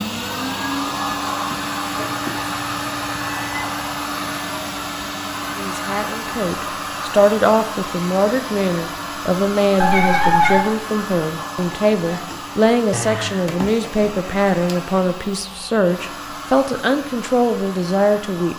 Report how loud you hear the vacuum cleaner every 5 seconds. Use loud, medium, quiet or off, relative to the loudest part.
loud, loud, medium, medium.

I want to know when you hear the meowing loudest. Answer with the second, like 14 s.
10 s.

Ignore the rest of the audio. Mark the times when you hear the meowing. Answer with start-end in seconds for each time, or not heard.
1.9-3.7, 9.8-10.6, 12.9-13.5.